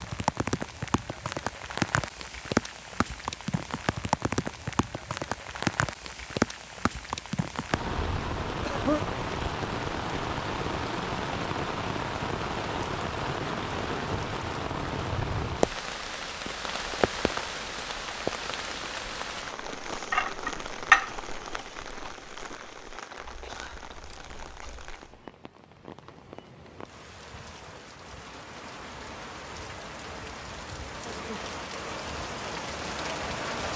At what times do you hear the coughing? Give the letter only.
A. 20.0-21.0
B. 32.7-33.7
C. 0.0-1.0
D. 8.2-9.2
D.